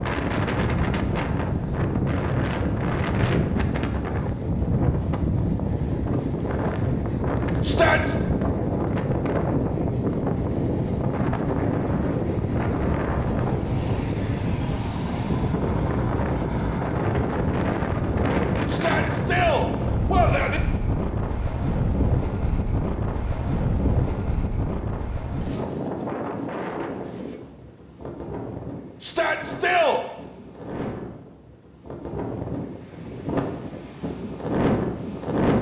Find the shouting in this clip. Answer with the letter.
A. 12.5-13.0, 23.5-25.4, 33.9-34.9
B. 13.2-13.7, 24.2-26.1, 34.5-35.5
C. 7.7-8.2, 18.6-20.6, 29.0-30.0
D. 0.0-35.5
C.